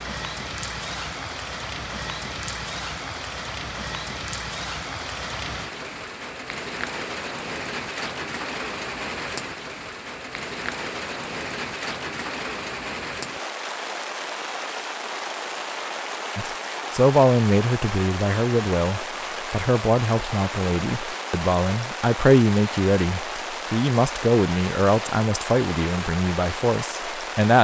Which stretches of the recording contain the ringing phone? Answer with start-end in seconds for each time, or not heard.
not heard.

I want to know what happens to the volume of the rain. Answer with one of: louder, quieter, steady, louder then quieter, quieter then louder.
steady.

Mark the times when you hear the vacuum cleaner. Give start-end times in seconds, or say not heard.
not heard.